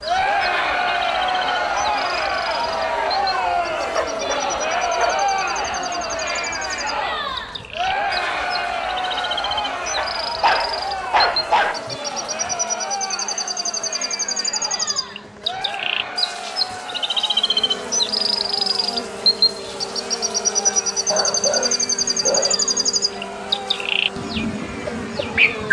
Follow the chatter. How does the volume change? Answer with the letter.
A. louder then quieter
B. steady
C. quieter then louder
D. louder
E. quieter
E.